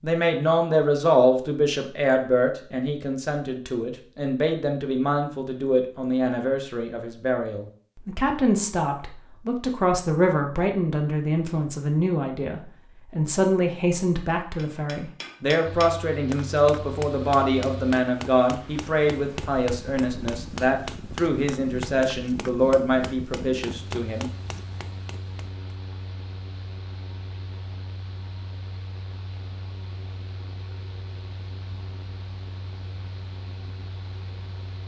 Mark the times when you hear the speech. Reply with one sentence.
The speech can be heard from 0.0 to 24.3 s.